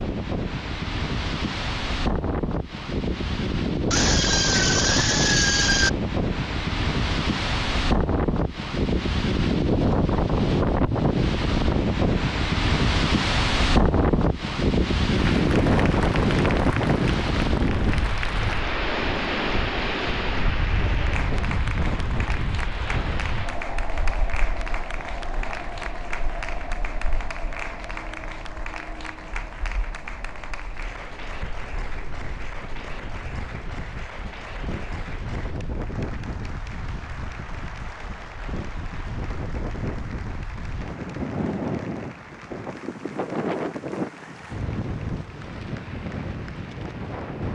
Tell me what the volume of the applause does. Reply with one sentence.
The volume of the applause goes down.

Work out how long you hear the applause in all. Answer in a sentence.
The applause can be heard for 32 seconds in total.